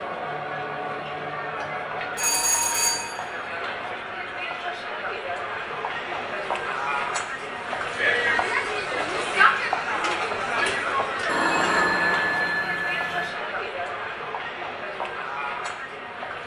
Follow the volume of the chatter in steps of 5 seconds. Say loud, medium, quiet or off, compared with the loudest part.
medium, loud, loud, medium.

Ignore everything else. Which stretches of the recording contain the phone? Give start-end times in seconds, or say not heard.
2.1-3.1, 11.2-13.3.